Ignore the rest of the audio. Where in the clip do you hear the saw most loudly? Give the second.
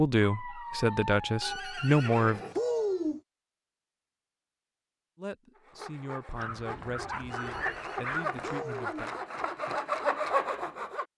10 s.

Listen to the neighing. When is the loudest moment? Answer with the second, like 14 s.
3 s.